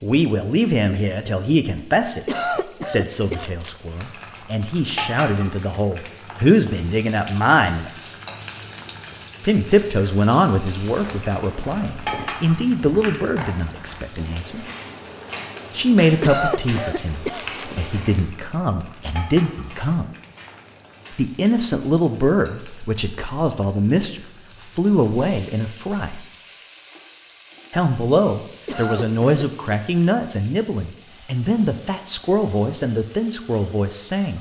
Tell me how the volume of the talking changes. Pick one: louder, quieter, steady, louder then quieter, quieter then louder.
steady.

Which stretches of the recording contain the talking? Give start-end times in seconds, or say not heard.
0.0-8.2, 9.4-14.7, 15.8-20.1, 21.1-26.2, 27.7-34.3.